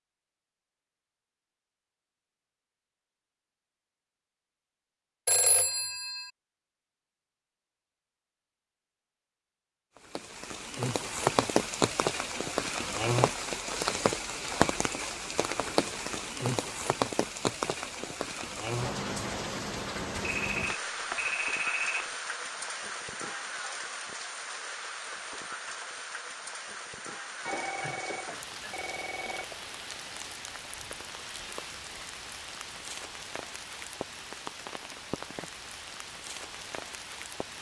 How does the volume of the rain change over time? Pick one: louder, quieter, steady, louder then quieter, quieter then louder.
quieter.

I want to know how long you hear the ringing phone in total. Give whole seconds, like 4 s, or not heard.
5 s.